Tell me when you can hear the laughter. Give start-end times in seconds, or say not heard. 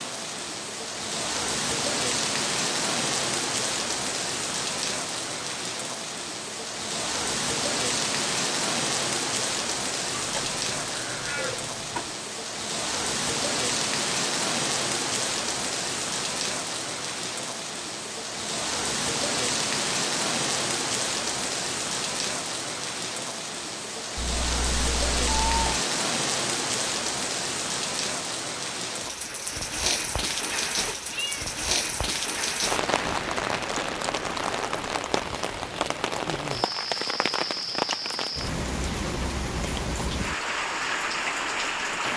not heard.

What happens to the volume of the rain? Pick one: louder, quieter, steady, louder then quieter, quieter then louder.
steady.